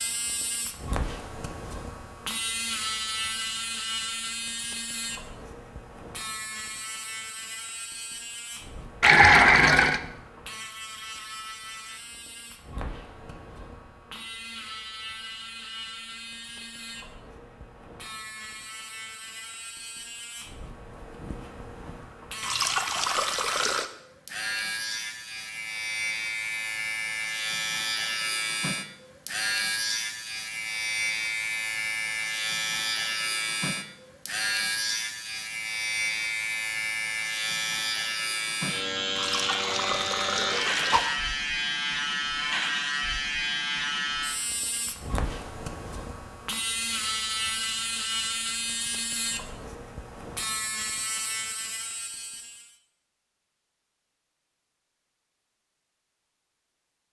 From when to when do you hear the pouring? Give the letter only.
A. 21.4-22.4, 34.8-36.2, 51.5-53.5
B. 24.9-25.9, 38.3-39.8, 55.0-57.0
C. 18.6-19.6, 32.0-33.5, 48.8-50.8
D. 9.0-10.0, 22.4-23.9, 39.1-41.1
D.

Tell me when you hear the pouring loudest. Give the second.
9 s.